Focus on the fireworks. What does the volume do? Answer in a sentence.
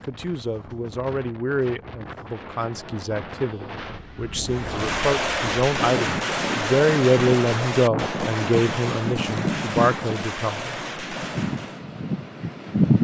The volume of the fireworks goes down.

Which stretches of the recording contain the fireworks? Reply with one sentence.
You can hear the fireworks from 4.5 to 11.8 s.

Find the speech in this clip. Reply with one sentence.
You can hear the speech from 0.1 to 10.8 s.